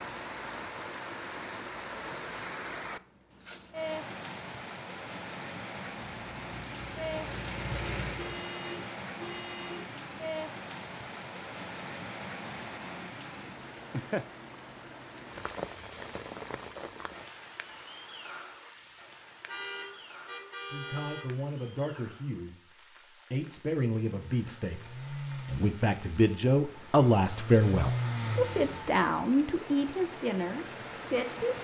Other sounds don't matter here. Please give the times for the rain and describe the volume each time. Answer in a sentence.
The rain can be heard from 0.0 to 31.6 s, getting quieter then louder.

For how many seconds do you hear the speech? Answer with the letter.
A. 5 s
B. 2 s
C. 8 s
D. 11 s
D.